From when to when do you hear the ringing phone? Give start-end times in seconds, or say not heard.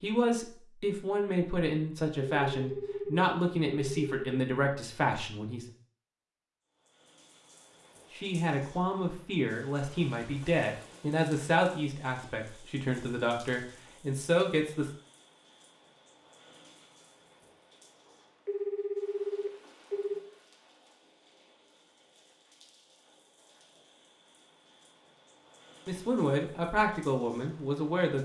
2.2-4.2, 18.4-20.2.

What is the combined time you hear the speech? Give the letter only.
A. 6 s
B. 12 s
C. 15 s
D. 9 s
C.